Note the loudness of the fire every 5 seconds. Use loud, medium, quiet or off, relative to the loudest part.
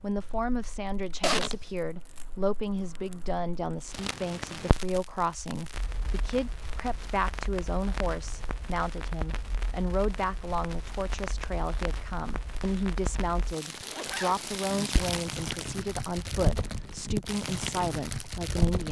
medium, medium, medium, loud.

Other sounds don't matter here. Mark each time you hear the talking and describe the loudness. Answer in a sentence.
The talking can be heard from 0.0 to 18.8 s, at a steady volume.